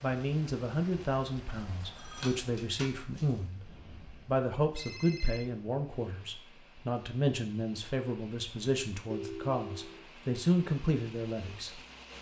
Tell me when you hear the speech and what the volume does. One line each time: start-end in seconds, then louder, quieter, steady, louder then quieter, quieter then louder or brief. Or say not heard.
0.0-11.8 steady.